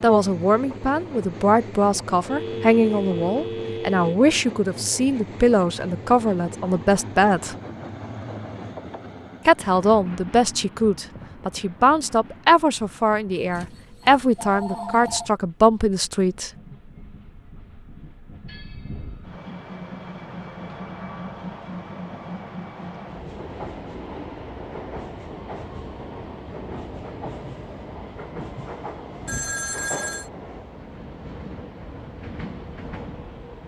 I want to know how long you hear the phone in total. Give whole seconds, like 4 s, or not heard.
5 s.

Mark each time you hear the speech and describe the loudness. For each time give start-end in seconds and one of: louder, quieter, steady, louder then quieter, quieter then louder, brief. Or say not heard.
0.0-7.5 steady
9.4-16.5 steady.